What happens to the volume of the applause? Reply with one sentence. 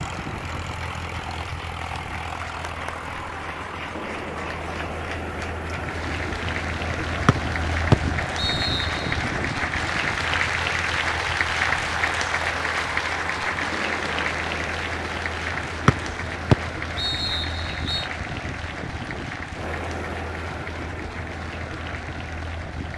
The volume of the applause goes up, then down.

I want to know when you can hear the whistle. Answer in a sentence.
You can hear the whistle from 7.2 to 9.2 s and from 15.8 to 18.1 s.